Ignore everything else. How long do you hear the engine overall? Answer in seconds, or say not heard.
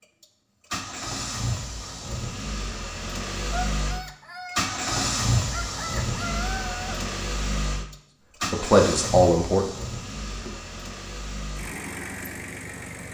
13 s.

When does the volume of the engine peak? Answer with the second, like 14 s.
5 s.